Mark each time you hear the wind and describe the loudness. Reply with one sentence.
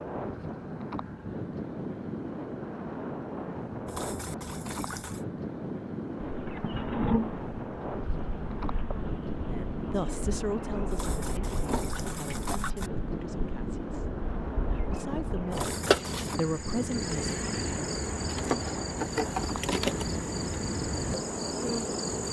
You can hear the wind from 0.0 to 22.2 s, at a steady volume.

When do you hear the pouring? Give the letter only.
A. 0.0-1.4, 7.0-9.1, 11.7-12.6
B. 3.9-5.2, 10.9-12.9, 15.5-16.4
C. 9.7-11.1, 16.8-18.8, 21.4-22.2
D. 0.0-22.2
B.